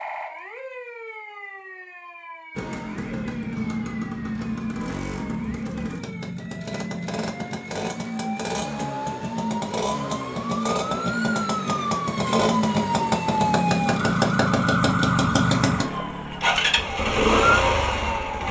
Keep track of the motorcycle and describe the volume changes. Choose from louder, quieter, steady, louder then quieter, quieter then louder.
louder.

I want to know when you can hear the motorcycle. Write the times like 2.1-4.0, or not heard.
2.5-18.4.